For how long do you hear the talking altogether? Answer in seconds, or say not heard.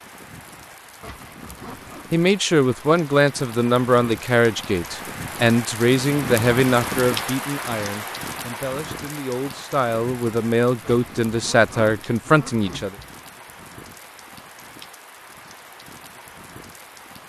11 s.